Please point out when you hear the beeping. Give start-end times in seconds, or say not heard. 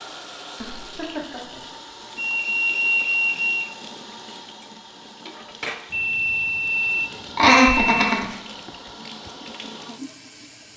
2.1-3.8, 5.9-8.0.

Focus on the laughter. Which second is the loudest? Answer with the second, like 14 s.
8 s.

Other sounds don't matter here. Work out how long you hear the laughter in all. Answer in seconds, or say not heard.
2 s.